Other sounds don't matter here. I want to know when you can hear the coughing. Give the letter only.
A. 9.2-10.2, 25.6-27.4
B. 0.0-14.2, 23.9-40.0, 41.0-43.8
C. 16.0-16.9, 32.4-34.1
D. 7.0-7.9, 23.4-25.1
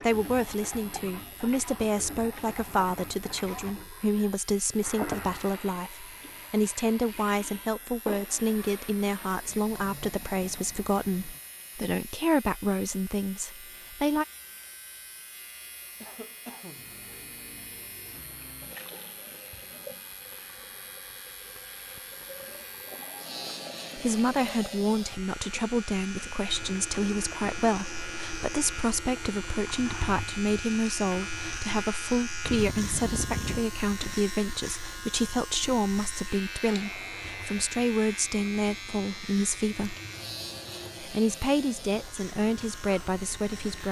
C.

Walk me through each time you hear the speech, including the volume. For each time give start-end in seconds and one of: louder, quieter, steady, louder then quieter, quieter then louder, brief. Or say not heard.
0.0-14.2 steady
23.9-40.0 steady
41.0-43.8 brief.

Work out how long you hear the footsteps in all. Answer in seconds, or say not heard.
not heard.